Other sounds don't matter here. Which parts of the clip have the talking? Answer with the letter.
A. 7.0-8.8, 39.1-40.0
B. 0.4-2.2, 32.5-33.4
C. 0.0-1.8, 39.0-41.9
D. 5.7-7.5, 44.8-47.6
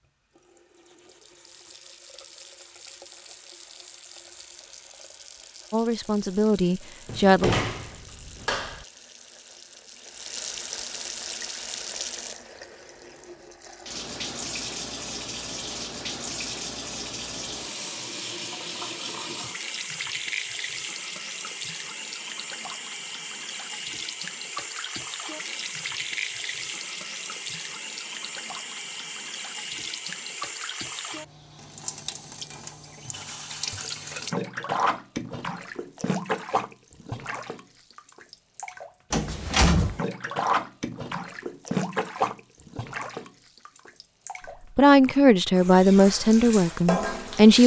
D.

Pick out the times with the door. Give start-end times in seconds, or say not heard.
7.0-8.8, 39.1-40.0.